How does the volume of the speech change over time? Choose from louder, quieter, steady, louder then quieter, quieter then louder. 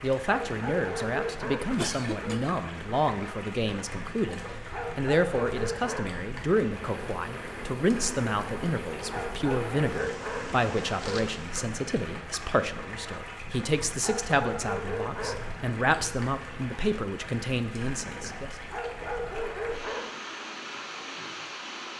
steady.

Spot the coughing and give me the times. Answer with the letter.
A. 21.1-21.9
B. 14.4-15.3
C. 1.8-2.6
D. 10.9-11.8
C.